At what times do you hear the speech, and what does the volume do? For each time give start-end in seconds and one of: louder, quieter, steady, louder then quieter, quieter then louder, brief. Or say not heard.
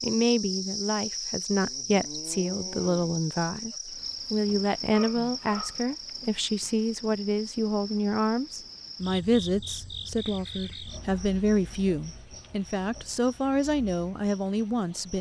0.0-15.1 steady.